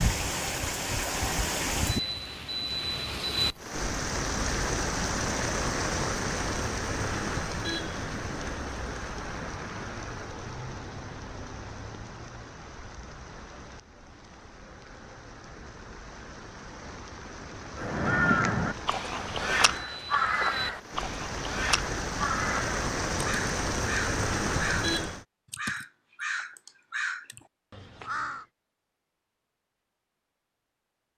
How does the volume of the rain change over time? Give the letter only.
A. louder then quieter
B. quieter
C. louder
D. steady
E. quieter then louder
E.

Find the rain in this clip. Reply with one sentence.
The rain can be heard from 0.0 to 25.2 s.